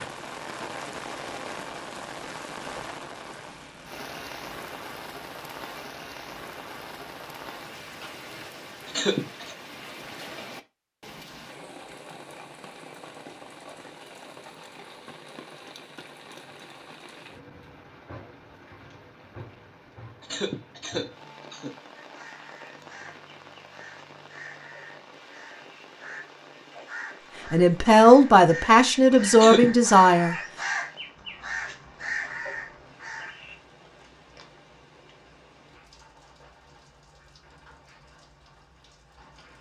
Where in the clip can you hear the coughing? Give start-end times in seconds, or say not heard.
8.8-9.6, 20.2-21.8, 29.3-29.8.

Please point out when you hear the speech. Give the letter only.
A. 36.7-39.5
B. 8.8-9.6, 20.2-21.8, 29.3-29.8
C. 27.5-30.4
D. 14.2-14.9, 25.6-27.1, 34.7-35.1
C.